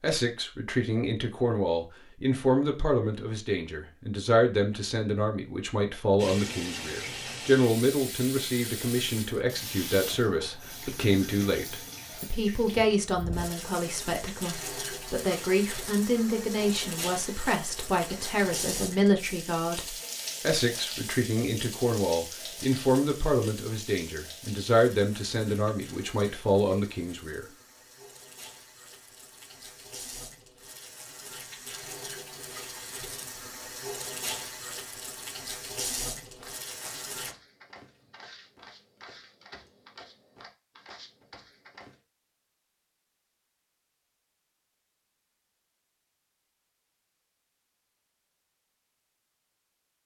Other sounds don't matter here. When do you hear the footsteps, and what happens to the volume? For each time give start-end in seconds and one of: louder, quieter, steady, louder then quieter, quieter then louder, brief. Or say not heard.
36.3-42.0 steady.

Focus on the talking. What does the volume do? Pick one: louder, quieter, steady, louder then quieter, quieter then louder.
steady.